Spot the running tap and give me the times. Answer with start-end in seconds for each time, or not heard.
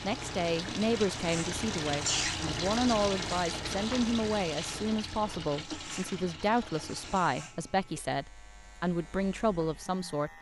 0.0-7.2.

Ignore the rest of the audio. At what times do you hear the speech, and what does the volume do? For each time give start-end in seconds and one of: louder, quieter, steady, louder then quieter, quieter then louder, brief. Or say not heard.
0.0-10.3 steady.